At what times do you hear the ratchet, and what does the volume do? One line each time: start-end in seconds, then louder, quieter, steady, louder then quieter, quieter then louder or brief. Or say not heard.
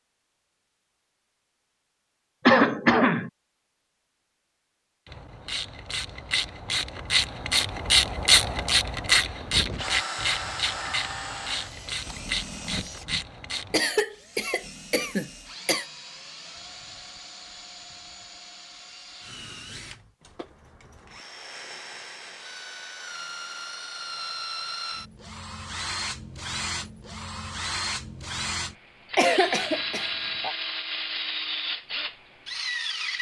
5.0-13.8 louder then quieter.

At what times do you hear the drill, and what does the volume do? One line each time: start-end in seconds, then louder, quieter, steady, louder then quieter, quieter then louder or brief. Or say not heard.
9.5-33.1 quieter then louder.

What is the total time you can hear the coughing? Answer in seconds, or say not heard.
4 s.